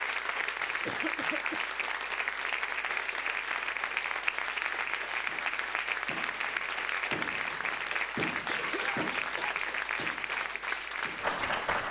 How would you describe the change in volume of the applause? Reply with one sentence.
The loudness of the applause stays about the same.